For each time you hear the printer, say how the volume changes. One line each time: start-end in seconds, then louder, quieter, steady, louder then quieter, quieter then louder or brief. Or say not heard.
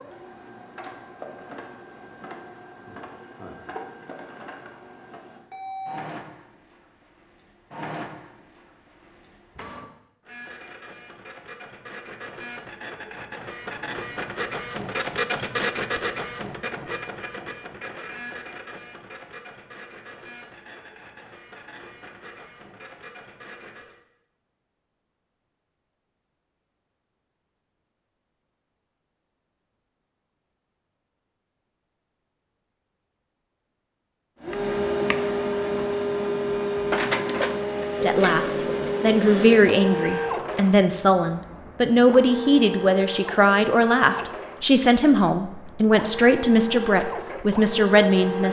0.0-23.9 louder then quieter
34.4-48.4 quieter.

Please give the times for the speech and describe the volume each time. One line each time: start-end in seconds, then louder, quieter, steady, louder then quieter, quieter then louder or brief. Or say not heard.
38.0-48.4 steady.